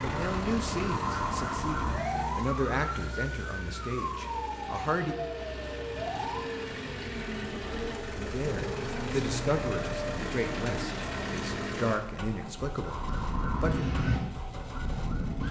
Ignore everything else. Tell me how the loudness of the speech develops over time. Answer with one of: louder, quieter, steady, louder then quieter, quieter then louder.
steady.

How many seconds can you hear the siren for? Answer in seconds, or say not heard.
9 s.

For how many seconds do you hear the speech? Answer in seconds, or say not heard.
11 s.